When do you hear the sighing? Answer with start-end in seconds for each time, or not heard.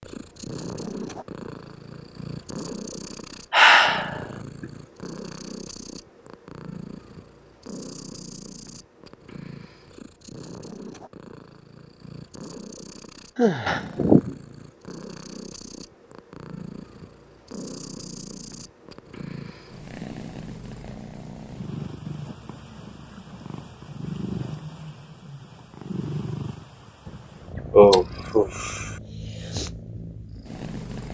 3.5-4.7, 13.3-14.3, 27.1-28.9.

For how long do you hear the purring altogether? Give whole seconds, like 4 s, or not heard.
31 s.